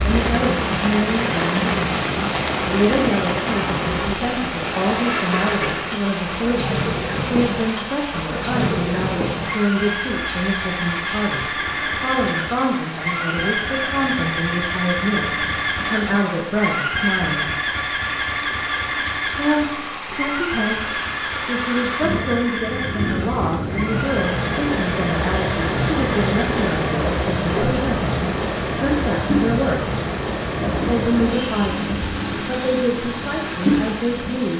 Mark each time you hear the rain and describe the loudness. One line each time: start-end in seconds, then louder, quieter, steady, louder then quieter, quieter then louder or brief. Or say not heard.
0.0-34.5 quieter then louder.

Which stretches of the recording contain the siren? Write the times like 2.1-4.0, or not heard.
not heard.